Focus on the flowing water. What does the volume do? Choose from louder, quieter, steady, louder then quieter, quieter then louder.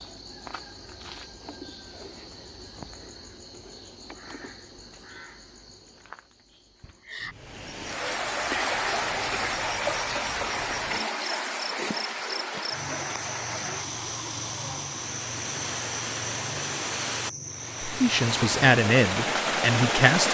quieter then louder.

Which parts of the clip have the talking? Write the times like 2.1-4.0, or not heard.
17.9-20.3.